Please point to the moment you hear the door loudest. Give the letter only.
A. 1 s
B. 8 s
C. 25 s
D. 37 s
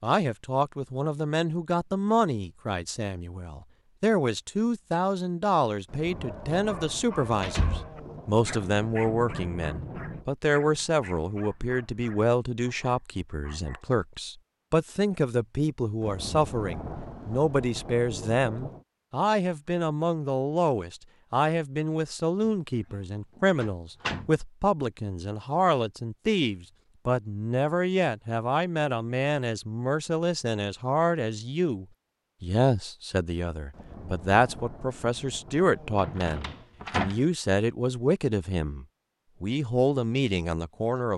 D.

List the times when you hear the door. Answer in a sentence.
You can hear the door from 7.2 to 7.9 s, from 23.6 to 24.4 s and from 36.0 to 37.2 s.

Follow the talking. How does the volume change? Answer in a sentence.
The volume of the talking stays about the same.